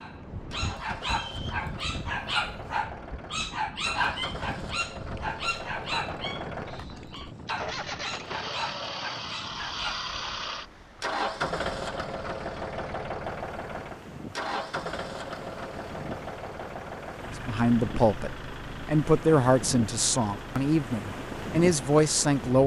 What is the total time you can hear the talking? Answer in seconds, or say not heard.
5 s.